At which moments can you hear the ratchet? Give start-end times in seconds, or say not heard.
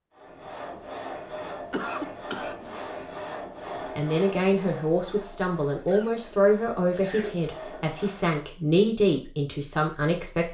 not heard.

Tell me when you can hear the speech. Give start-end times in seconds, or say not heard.
3.9-10.4.